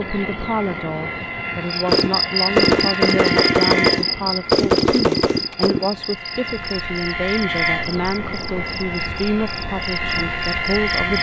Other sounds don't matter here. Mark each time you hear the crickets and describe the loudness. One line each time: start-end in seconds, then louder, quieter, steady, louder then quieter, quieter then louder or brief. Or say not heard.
1.7-11.1 quieter.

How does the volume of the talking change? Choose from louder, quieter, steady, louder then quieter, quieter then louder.
steady.